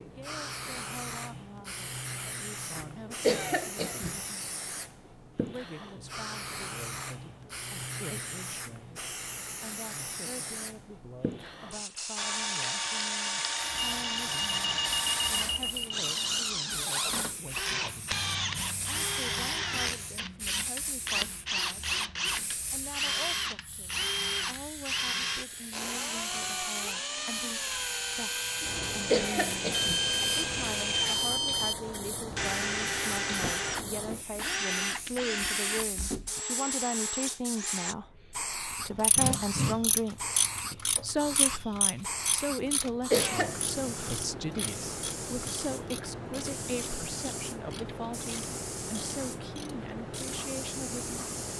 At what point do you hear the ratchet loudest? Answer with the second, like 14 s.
39 s.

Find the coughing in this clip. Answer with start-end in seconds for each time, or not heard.
2.8-4.2, 28.6-30.1, 42.6-43.7.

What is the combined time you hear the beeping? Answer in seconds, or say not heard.
5 s.